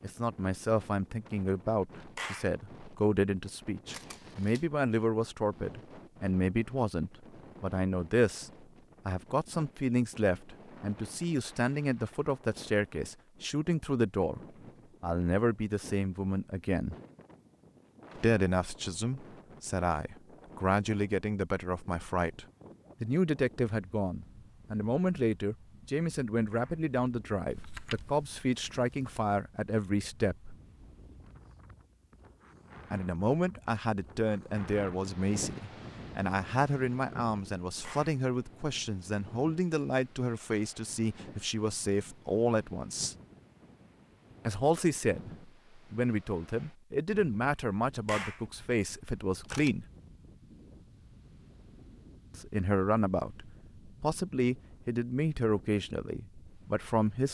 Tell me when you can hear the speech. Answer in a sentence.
The speech can be heard from 0.0 to 14.4 s, from 15.0 to 16.9 s, from 18.1 to 30.6 s, from 32.9 to 43.1 s, from 44.5 to 49.9 s and from 52.3 to 57.3 s.